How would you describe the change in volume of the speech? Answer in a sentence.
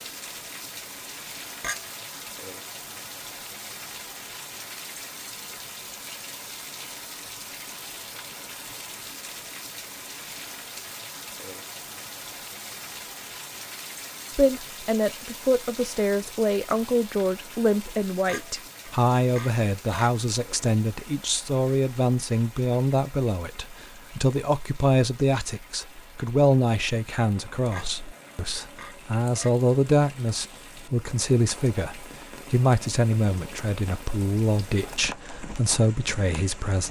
The loudness of the speech stays about the same.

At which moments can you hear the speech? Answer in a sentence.
The speech can be heard from 14.3 to 36.8 s.